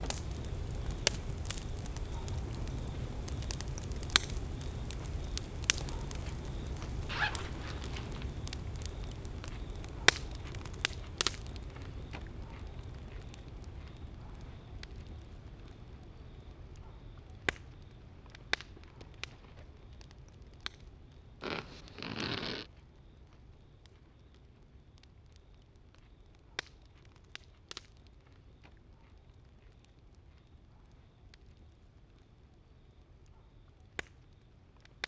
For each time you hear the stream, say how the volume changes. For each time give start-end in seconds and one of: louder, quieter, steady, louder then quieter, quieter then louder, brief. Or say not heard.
not heard.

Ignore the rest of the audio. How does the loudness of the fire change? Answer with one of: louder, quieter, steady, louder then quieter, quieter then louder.
quieter.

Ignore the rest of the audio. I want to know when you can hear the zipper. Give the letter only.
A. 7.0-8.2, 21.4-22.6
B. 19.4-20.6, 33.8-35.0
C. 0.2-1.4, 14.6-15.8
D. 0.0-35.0
A.